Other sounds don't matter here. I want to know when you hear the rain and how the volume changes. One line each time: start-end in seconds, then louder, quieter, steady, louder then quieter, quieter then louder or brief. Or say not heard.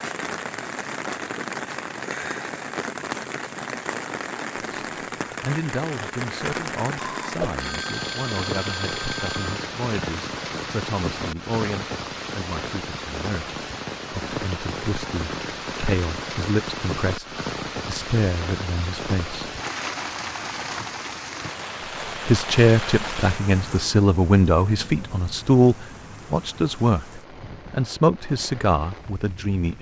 0.0-29.7 quieter.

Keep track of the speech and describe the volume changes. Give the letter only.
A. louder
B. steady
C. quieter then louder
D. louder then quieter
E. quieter
A.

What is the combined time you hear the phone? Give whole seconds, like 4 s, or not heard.
3 s.